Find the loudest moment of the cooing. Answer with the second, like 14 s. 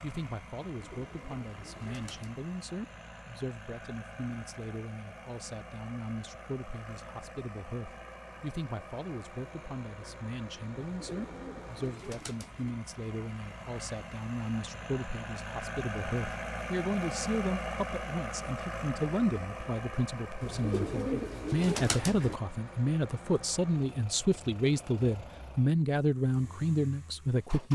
21 s.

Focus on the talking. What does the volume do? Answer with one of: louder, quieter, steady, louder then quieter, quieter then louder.
louder.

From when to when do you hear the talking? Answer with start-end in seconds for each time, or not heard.
0.0-27.7.